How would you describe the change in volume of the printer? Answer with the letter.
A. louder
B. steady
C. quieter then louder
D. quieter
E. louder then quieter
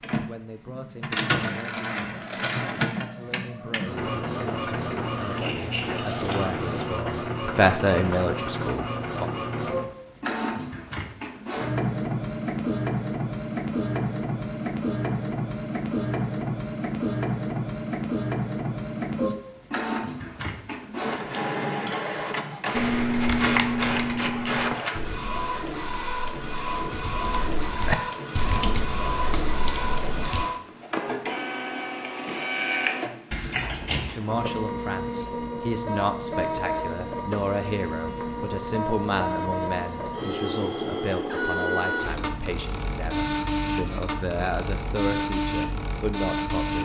B.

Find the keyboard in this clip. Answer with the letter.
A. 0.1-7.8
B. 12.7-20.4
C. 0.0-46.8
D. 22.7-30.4
D.